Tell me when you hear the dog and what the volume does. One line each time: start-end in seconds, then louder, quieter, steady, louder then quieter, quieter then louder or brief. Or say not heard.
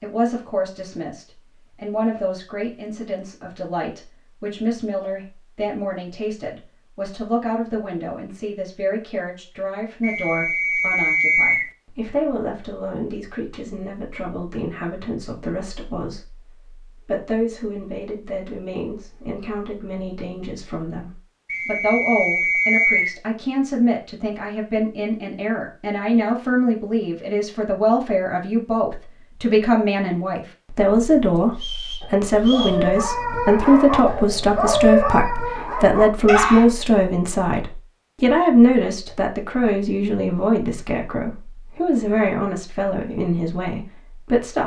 31.1-36.7 louder then quieter.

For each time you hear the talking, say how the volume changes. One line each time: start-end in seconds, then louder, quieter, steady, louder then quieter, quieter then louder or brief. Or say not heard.
0.0-44.6 louder.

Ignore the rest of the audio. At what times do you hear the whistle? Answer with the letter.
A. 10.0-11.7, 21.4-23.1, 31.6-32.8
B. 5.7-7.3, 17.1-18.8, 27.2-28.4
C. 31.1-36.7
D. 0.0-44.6
A.